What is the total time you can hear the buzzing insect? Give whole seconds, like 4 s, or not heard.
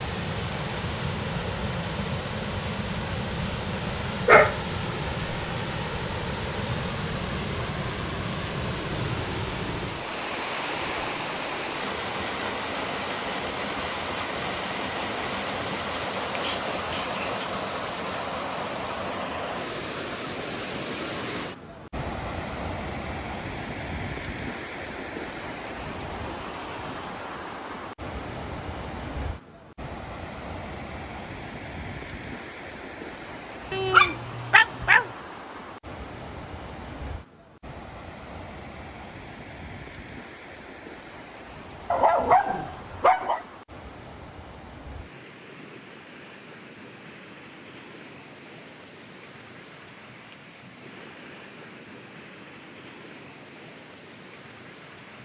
not heard.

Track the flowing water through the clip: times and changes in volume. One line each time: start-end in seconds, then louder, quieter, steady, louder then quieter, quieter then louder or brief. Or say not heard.
0.0-55.1 quieter.